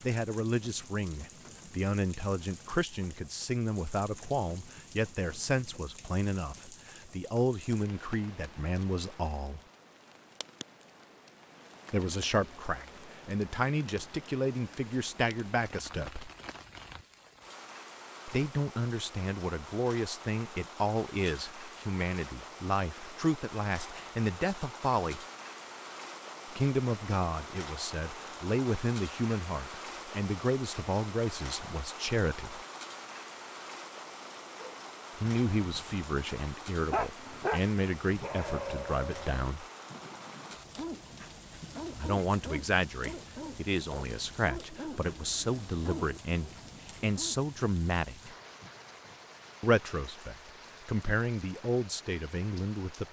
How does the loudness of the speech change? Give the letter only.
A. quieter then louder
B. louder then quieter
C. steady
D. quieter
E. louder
C.